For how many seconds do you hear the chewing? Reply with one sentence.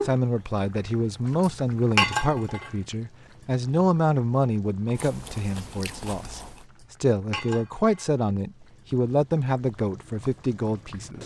The chewing can be heard for 2 seconds in total.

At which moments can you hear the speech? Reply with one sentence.
The speech can be heard from 0.0 to 11.2 s.